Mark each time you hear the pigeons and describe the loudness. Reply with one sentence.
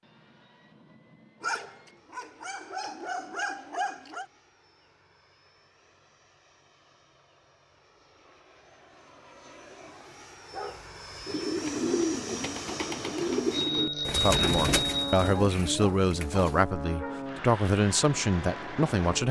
You can hear the pigeons from 11.2 to 16.6 s, getting quieter.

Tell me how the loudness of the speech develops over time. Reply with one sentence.
The volume of the speech stays about the same.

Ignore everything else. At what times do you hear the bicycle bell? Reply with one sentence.
The bicycle bell can be heard from 13.5 to 15.2 s.